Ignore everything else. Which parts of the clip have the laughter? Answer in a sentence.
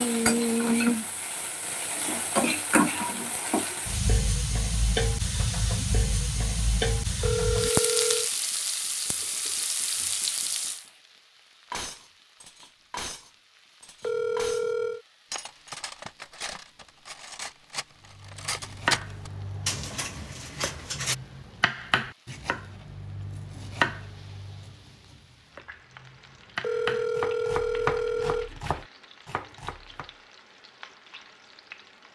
The laughter can't be heard in this clip.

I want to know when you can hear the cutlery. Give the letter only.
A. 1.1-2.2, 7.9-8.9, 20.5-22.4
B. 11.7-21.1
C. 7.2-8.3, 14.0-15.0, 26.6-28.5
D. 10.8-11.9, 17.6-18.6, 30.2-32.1
B.